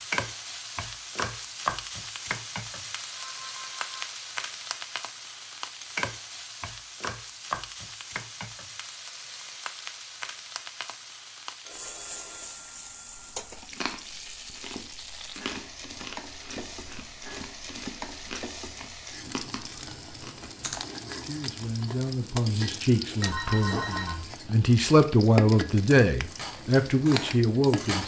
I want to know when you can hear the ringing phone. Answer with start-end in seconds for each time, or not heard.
3.1-3.9, 11.7-13.7, 23.2-24.2.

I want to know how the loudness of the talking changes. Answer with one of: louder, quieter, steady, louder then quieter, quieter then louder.
louder.